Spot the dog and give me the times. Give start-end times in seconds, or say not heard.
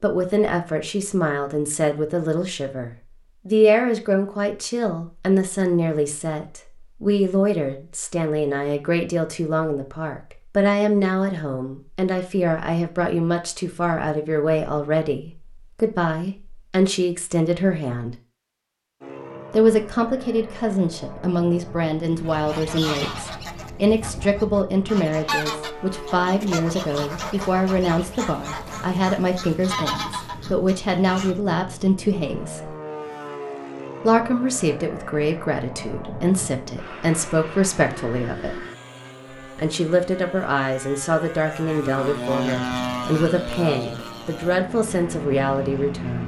not heard.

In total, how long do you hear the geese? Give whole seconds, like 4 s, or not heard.
9 s.